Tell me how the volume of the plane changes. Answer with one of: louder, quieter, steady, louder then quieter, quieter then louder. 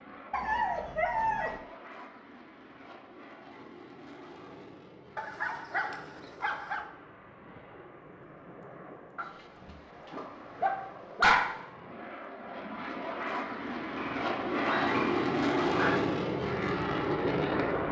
louder.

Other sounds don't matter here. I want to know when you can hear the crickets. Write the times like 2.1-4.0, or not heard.
not heard.